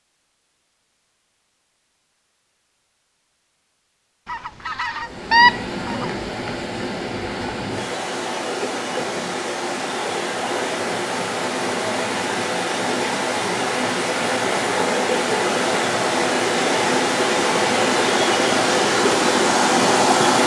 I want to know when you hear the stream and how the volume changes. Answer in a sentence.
The stream can be heard from 4.9 to 20.4 s, getting louder.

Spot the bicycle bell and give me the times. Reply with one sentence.
The bicycle bell can't be heard in this clip.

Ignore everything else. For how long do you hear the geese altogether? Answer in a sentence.
The geese can be heard for 2 seconds in total.